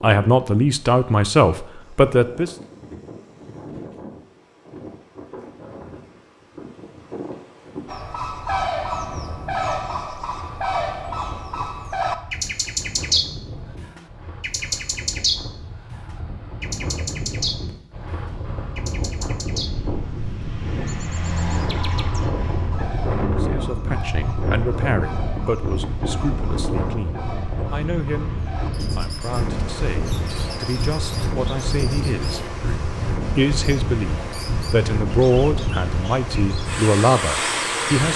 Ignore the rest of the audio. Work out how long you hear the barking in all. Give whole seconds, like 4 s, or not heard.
not heard.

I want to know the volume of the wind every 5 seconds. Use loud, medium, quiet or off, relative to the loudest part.
quiet, quiet, quiet, medium, loud, loud, loud, loud.